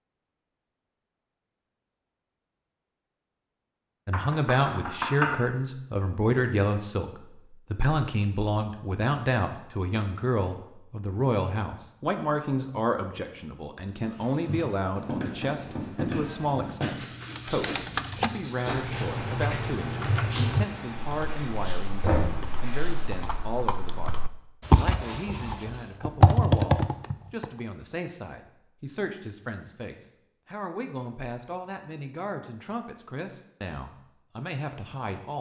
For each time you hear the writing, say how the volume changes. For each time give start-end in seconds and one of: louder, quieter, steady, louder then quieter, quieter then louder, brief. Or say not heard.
14.0-23.5 quieter.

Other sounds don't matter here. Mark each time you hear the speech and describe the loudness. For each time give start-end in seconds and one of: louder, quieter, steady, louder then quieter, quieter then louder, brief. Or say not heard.
4.0-35.3 quieter.